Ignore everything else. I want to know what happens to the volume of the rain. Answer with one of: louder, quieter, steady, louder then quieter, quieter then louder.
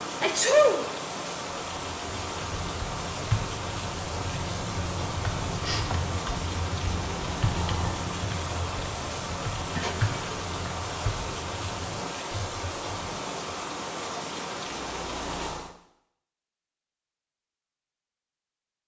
steady.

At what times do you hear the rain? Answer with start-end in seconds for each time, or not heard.
0.0-15.8.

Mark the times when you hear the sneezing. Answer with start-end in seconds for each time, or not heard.
0.2-0.8, 9.8-10.4.